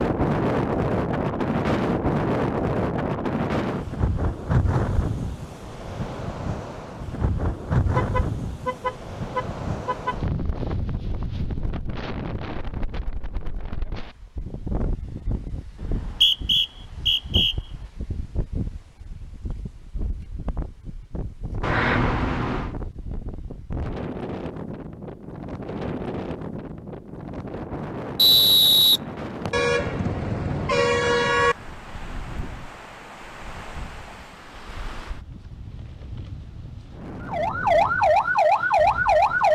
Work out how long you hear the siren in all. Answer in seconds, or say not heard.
2 s.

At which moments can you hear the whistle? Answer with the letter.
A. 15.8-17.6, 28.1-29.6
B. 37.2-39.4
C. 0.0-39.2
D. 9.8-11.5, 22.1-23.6
A.